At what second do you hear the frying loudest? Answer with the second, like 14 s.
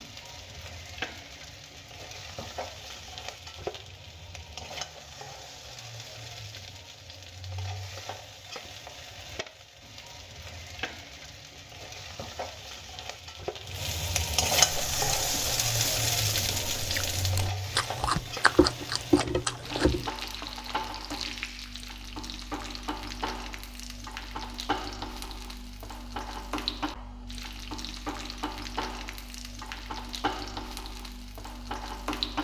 15 s.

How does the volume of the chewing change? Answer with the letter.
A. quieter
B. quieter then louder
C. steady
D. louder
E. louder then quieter
D.